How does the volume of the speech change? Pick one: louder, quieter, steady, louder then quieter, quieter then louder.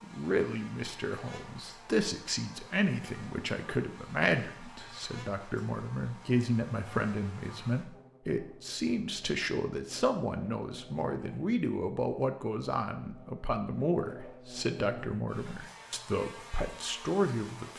steady.